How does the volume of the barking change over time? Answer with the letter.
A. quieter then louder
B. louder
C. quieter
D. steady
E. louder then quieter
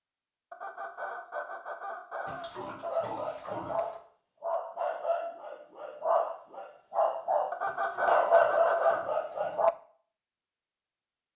B.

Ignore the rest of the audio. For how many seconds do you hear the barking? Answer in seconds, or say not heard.
7 s.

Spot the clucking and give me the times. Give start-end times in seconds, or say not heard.
0.5-2.5, 7.5-9.1.